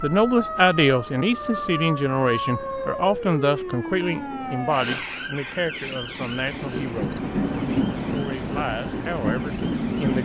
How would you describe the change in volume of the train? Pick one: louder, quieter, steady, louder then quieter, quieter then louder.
louder.